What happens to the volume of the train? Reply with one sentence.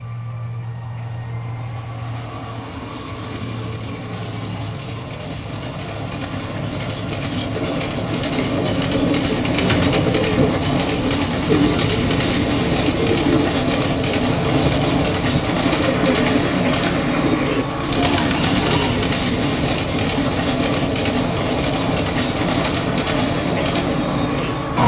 The loudness of the train goes up.